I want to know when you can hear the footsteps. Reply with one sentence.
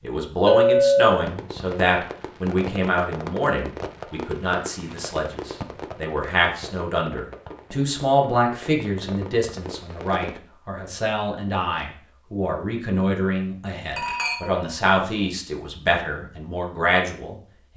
The footsteps can't be heard in this clip.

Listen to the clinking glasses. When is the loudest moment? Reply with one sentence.
The loudest moment of the clinking glasses is at 1 second.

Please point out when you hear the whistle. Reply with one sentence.
The whistle can't be heard in this clip.